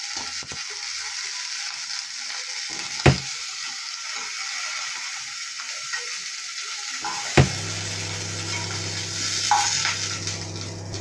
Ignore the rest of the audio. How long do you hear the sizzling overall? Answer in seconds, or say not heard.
11 s.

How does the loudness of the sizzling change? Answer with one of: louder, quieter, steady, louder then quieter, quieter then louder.
louder.